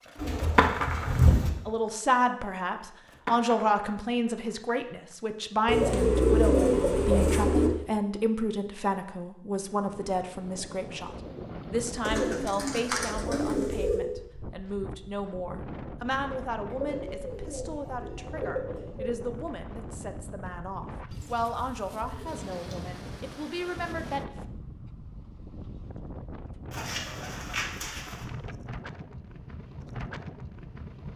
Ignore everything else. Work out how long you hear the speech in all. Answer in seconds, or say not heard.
23 s.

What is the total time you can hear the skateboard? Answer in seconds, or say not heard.
5 s.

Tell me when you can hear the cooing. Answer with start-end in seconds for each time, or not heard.
0.1-1.5, 5.7-7.7, 12.1-14.1, 16.7-19.2, 21.1-22.9, 26.7-28.2.